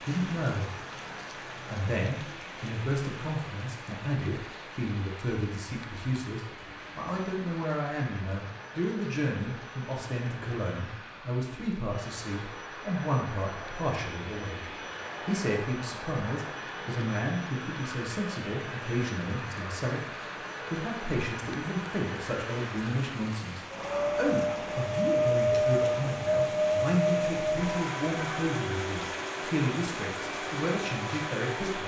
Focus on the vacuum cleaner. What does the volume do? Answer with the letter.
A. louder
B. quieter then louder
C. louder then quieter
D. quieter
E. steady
A.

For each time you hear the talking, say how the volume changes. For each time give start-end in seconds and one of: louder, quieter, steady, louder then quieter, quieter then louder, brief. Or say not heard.
0.0-0.7 brief
1.6-31.8 steady.